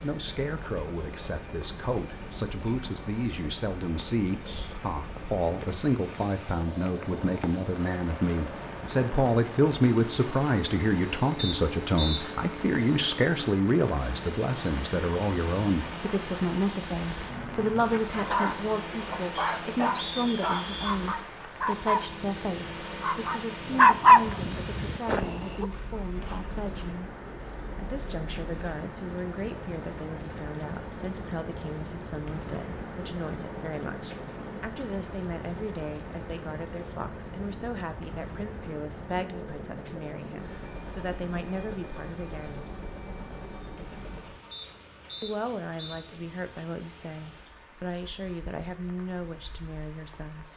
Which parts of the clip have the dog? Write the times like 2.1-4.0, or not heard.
17.2-25.6.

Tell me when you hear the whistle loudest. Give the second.
12 s.